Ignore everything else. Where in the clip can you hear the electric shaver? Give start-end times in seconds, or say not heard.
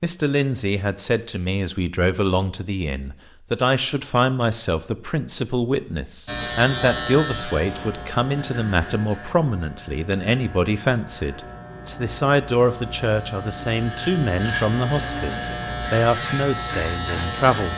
6.2-17.7.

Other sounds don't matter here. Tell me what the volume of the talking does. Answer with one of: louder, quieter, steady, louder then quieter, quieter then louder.
steady.